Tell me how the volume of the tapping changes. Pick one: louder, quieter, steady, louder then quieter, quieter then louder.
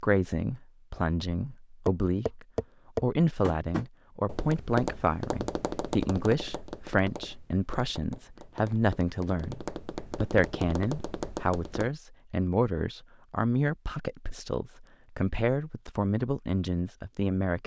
quieter then louder.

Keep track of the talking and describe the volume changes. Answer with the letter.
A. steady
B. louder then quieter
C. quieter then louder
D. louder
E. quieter
A.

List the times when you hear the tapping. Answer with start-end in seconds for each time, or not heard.
1.9-11.9.